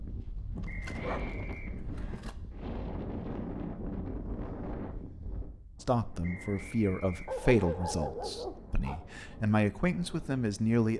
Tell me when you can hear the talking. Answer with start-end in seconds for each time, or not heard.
5.8-10.9.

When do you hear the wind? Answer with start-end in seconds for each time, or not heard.
0.0-10.8.